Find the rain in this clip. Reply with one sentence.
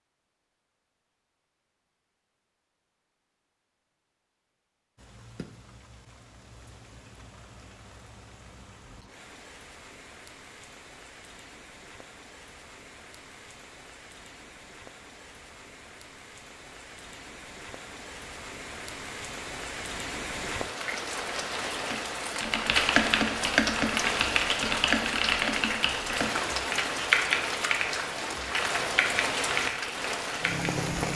You can hear the rain from 5.0 to 31.1 s.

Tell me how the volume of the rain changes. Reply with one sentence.
The loudness of the rain goes up.